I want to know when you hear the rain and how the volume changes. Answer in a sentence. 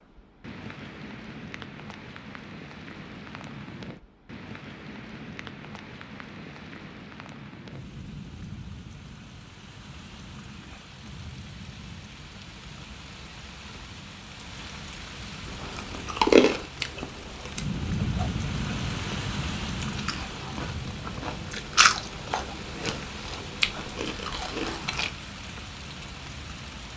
The rain can be heard from 0.0 to 26.9 s, getting louder then quieter.